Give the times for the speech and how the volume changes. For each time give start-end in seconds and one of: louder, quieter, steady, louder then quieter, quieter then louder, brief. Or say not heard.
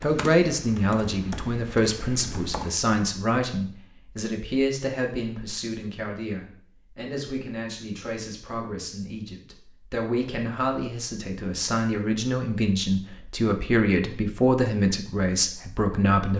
0.0-16.3 quieter then louder.